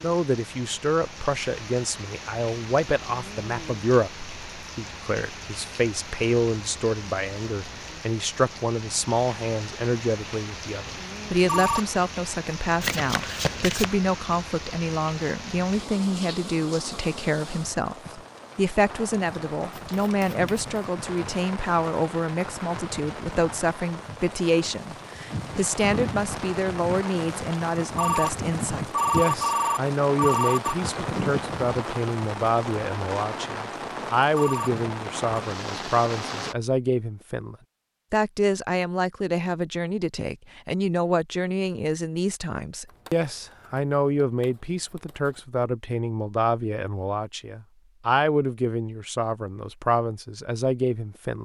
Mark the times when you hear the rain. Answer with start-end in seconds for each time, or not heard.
0.0-36.5.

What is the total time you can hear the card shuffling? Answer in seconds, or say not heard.
5 s.